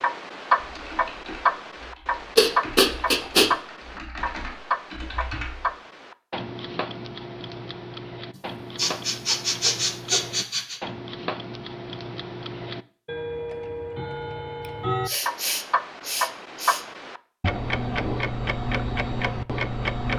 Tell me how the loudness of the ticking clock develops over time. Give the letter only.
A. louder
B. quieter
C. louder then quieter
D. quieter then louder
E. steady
D.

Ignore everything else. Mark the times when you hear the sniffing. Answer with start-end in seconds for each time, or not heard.
2.4-3.5, 8.3-10.8, 14.6-16.9.